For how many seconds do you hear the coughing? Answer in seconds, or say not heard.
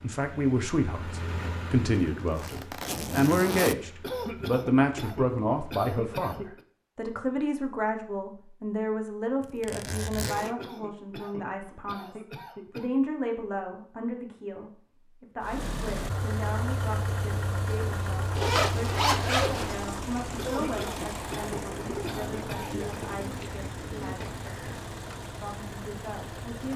8 s.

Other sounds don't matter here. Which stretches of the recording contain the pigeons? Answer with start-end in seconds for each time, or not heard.
21.8-24.9.